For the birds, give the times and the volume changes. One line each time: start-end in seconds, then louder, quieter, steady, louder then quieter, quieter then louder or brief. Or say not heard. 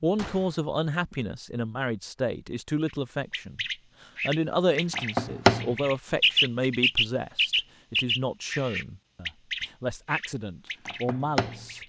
2.9-11.8 louder then quieter.